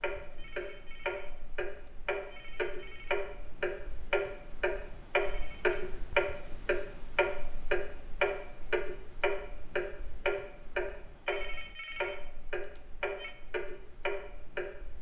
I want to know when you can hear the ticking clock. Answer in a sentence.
You can hear the ticking clock from 0.0 to 14.9 s.